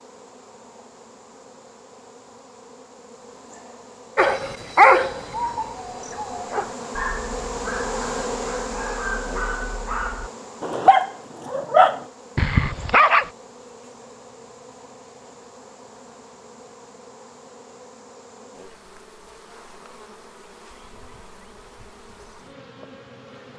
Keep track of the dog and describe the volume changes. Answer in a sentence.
The loudness of the dog goes down, then up.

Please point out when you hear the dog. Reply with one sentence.
You can hear the dog from 4.2 to 13.3 s.